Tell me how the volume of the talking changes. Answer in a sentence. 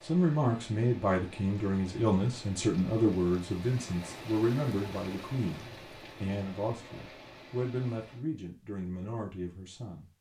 The loudness of the talking goes down.